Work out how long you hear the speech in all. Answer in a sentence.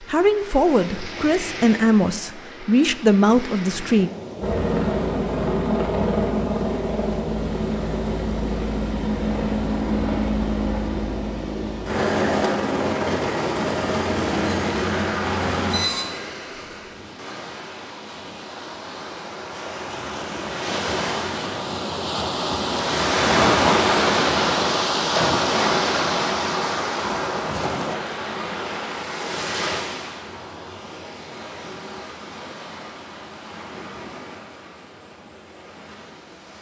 You can hear the speech for 4 seconds altogether.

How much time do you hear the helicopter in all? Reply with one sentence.
You can hear the helicopter for 12 seconds altogether.